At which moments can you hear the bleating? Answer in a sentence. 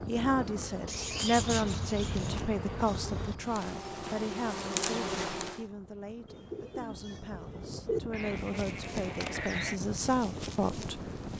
The bleating can be heard from 1.4 to 3.4 s and from 8.1 to 9.8 s.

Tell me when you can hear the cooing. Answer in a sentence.
The cooing can be heard from 0.8 to 2.5 s and from 6.2 to 8.0 s.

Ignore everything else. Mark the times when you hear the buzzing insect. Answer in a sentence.
The buzzing insect can be heard from 0.0 to 5.7 s and from 8.2 to 11.3 s.